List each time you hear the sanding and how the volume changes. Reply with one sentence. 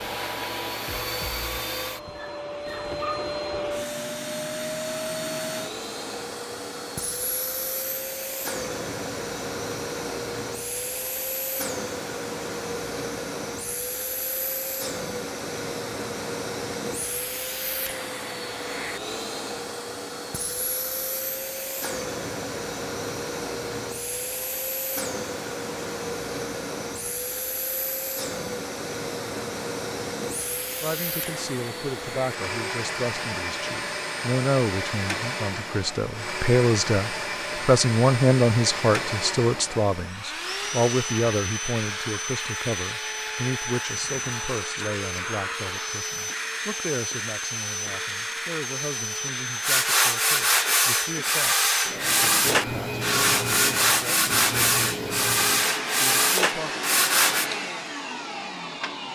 You can hear the sanding from 49.6 to 57.5 s, at a steady volume.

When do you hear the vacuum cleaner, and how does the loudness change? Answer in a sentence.
The vacuum cleaner can be heard from 0.0 to 59.1 s, at a steady volume.